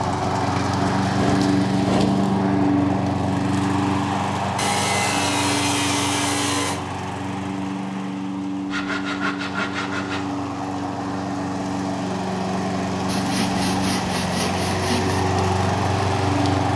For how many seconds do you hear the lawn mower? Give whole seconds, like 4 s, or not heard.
17 s.